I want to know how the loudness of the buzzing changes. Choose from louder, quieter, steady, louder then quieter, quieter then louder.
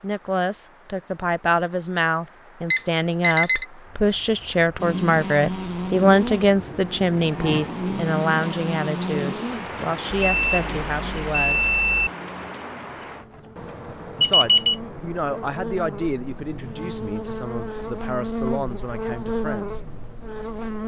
quieter then louder.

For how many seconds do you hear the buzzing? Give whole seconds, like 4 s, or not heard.
16 s.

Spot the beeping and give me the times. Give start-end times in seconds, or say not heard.
2.7-3.6, 10.1-12.1, 14.2-14.8.